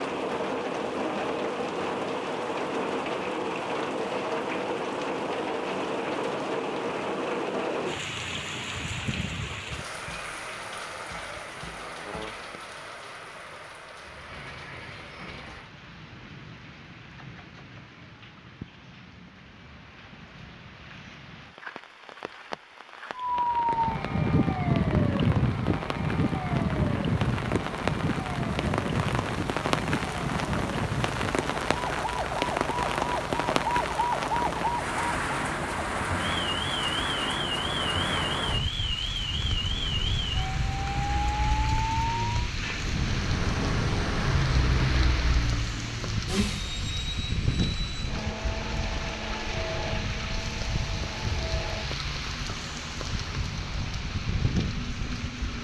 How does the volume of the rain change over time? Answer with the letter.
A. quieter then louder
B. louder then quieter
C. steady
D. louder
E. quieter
A.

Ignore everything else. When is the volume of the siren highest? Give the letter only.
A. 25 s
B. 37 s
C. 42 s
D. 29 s
A.